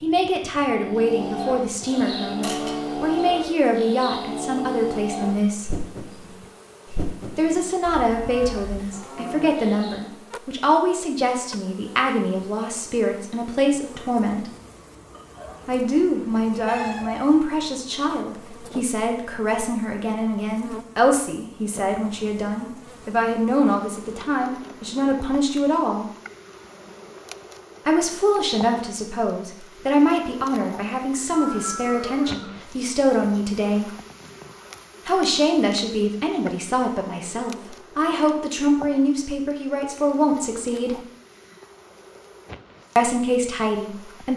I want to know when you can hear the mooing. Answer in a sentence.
You can hear the mooing from 0.7 to 10.2 s.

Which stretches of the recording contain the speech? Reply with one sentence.
The speech can be heard from 0.0 to 5.8 s, from 7.3 to 14.4 s, from 15.7 to 26.1 s, from 27.9 to 33.9 s, from 35.0 to 41.0 s and from 43.0 to 44.3 s.